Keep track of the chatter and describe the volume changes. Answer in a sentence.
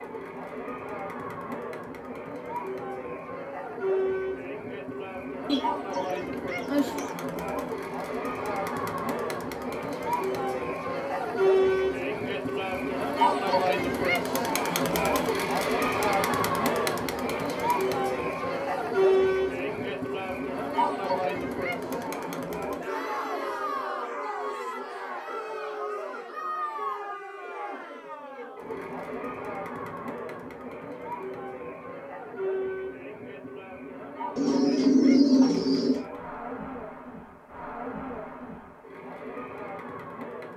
The loudness of the chatter goes up, then down.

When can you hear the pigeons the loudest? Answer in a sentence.
The volume of the pigeons peaks at 35 seconds.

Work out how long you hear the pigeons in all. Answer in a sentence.
You can hear the pigeons for 5 seconds altogether.